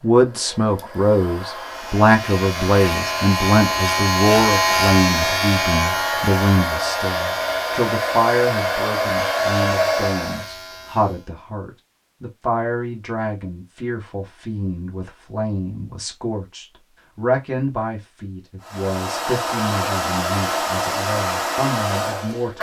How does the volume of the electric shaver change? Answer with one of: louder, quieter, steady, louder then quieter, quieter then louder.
louder then quieter.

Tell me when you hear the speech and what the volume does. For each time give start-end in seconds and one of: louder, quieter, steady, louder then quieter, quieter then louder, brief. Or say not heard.
0.0-22.5 quieter.